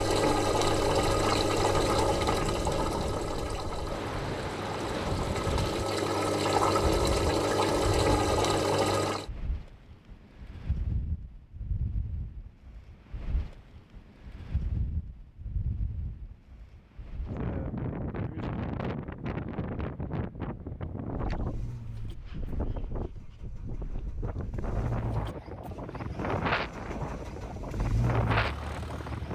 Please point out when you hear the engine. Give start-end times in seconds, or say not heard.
0.0-9.2, 21.4-29.2.